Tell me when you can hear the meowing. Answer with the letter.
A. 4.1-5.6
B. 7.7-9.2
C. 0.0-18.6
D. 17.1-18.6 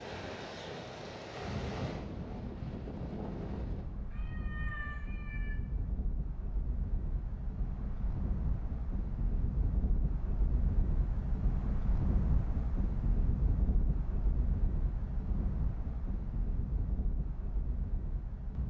A.